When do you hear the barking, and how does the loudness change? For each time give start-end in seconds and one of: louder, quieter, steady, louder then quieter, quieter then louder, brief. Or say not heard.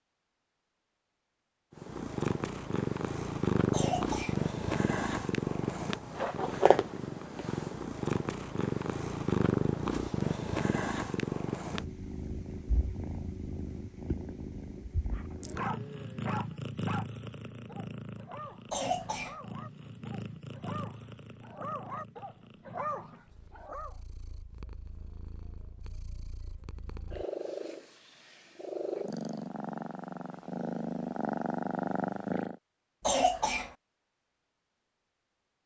15.1-23.9 quieter then louder.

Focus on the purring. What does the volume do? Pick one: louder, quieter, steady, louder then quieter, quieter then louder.
quieter then louder.